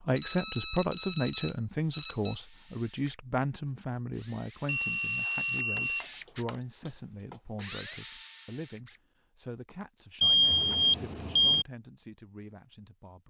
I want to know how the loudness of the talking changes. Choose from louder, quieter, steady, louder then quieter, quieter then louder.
quieter.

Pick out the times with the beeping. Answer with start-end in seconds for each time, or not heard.
0.1-2.4, 4.7-6.5, 10.2-11.7.